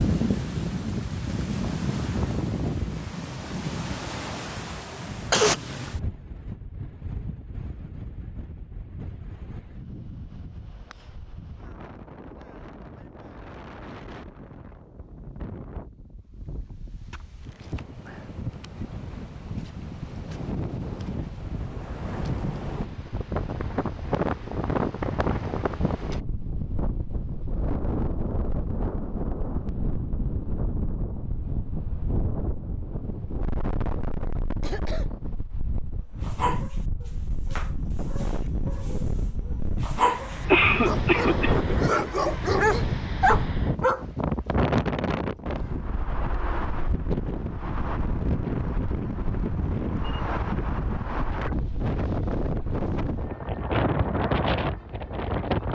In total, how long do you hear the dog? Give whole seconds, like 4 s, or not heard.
8 s.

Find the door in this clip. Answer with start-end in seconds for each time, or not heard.
not heard.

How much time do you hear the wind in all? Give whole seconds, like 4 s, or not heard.
56 s.